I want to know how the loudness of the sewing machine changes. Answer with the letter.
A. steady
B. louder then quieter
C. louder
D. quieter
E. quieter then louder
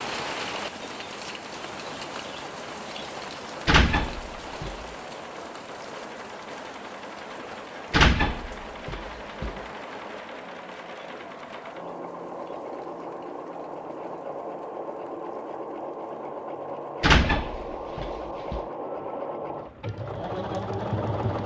C.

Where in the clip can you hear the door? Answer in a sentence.
You can hear the door from 3.6 to 4.8 s, from 7.9 to 9.6 s and from 17.0 to 18.6 s.